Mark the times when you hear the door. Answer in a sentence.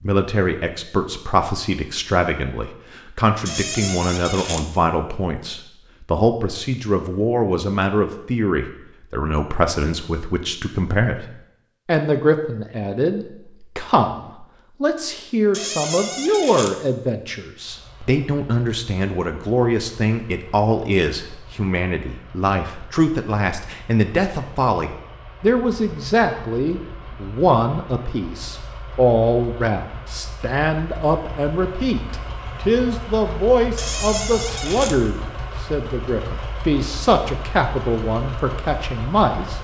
You can hear the door from 3.5 to 4.7 s, from 15.5 to 16.8 s and from 33.8 to 35.0 s.